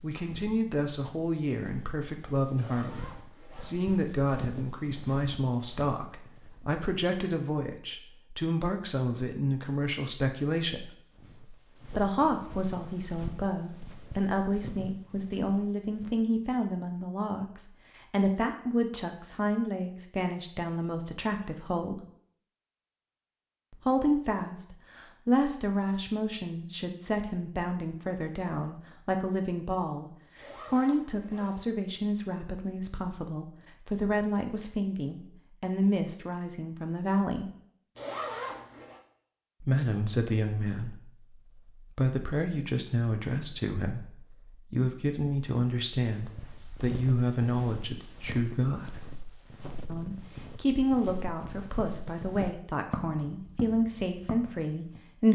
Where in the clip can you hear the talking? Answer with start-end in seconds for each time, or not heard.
0.0-10.9, 11.9-22.1, 23.7-37.5, 39.6-49.0, 49.9-55.2.